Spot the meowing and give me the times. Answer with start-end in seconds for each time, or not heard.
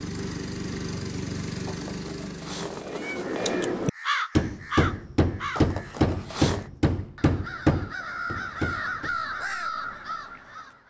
1.6-3.7, 5.5-6.7.